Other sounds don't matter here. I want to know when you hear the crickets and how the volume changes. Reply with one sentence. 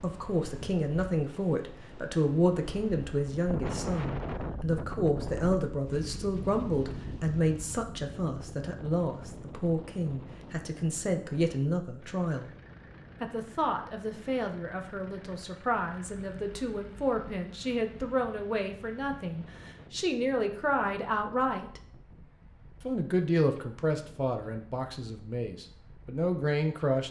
You can't hear the crickets here.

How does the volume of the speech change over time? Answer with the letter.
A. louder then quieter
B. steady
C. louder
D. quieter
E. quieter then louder
B.